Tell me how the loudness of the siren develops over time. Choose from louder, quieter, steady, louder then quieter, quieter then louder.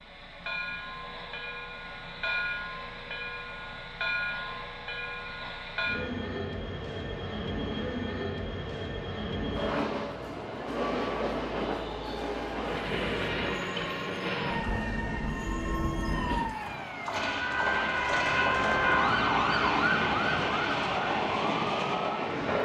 louder.